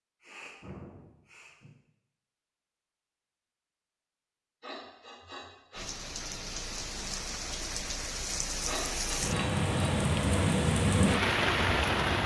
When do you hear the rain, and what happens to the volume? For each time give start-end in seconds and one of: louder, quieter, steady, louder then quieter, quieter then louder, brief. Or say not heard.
5.7-12.2 louder.